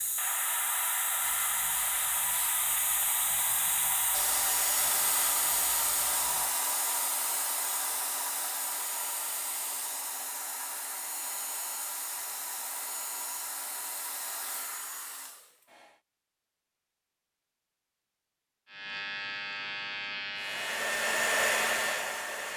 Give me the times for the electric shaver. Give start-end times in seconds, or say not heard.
0.0-6.6, 18.6-22.5.